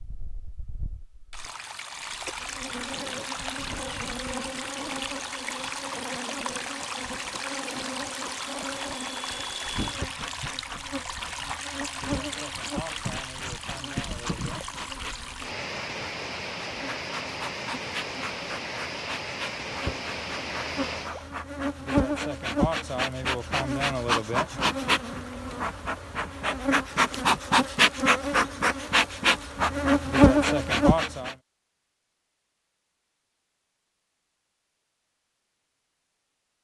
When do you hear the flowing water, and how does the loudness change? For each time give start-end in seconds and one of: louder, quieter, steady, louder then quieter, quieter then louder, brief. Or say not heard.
0.0-21.4 steady.